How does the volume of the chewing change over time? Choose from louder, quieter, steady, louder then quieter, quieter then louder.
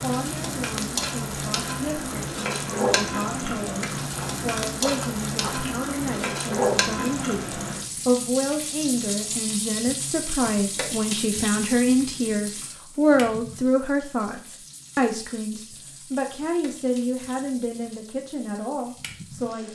quieter then louder.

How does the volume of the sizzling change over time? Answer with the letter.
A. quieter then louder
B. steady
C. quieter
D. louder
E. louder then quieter
C.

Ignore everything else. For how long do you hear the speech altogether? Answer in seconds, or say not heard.
20 s.